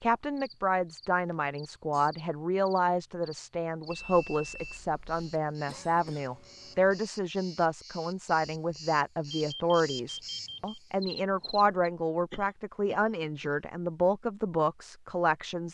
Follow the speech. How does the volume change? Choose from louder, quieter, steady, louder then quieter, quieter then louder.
steady.